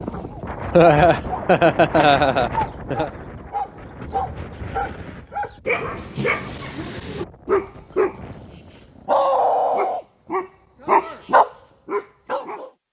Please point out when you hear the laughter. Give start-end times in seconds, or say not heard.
0.7-3.1.